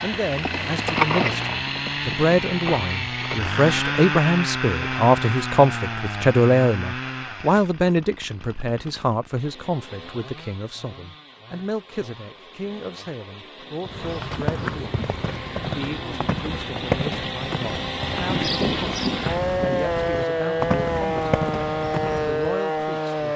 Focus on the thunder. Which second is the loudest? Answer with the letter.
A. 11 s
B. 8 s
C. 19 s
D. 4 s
C.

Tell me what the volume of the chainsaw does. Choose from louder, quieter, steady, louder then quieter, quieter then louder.
quieter then louder.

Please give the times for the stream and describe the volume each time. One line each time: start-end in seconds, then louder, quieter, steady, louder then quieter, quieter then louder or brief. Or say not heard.
not heard.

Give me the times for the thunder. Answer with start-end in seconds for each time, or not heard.
18.2-19.9.